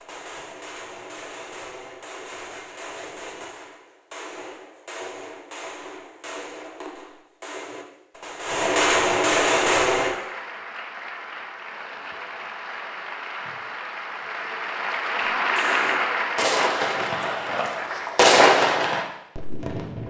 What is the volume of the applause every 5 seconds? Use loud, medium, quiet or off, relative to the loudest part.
off, off, medium, loud.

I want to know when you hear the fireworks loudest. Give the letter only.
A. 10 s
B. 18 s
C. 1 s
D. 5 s
B.